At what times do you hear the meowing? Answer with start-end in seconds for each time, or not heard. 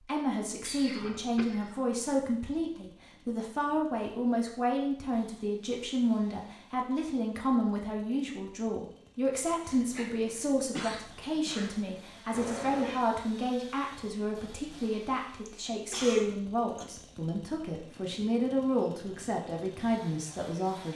12.3-13.0.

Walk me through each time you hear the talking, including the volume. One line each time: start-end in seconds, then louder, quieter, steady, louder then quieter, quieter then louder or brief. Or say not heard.
0.0-20.9 steady.